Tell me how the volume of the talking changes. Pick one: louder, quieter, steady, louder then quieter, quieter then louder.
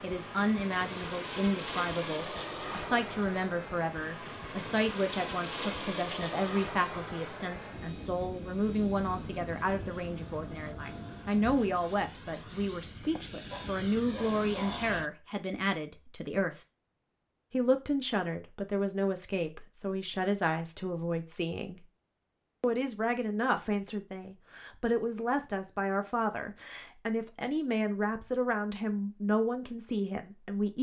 steady.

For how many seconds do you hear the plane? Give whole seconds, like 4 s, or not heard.
15 s.